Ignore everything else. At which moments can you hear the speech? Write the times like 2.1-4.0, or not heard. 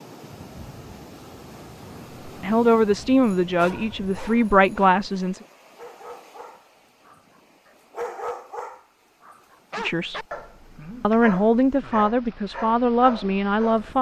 2.2-5.4, 9.8-10.2, 11.0-13.9.